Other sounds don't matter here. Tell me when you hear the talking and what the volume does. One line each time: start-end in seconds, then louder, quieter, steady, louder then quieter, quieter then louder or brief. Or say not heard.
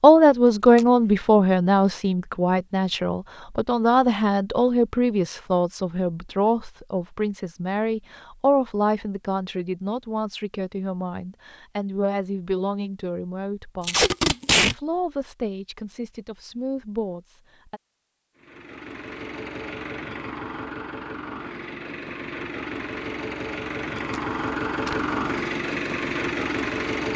0.0-17.8 quieter.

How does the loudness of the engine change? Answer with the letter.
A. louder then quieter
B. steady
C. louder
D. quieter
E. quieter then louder
C.